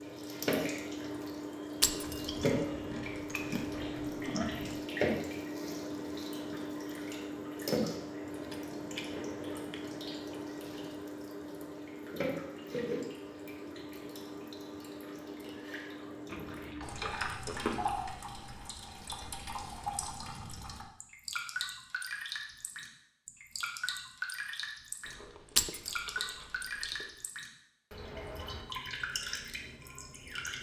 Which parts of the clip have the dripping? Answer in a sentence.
You can hear the dripping from 0.0 to 30.5 s.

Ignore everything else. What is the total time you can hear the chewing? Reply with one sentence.
You can hear the chewing for 9 seconds altogether.